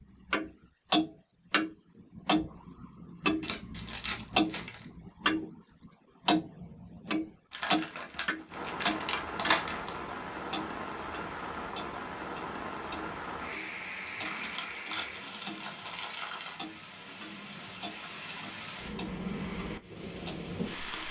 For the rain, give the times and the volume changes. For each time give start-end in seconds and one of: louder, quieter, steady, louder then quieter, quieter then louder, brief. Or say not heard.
8.5-21.0 quieter then louder.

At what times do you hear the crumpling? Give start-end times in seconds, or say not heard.
3.4-4.8, 7.5-9.9, 14.2-16.6.